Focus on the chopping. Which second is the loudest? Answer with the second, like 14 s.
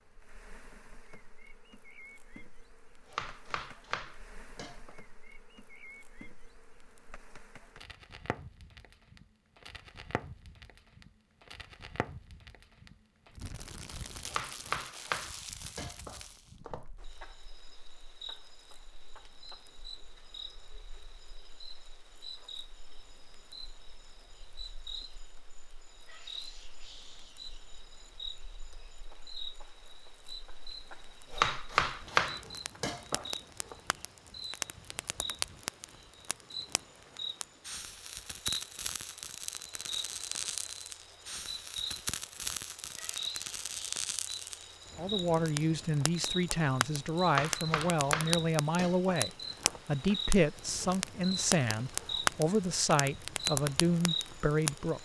32 s.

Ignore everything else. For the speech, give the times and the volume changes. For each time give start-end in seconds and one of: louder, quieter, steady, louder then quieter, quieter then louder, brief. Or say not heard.
45.0-55.0 steady.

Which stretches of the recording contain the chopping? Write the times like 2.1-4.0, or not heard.
3.0-5.0, 14.2-16.9, 31.3-33.8, 47.2-49.8.